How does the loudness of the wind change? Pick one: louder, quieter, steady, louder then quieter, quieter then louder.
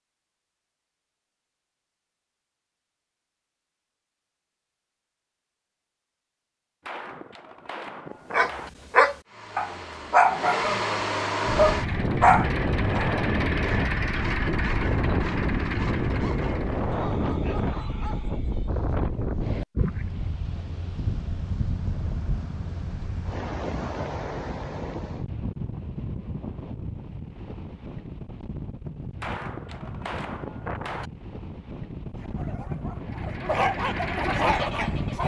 quieter.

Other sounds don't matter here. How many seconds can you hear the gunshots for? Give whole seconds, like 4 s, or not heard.
4 s.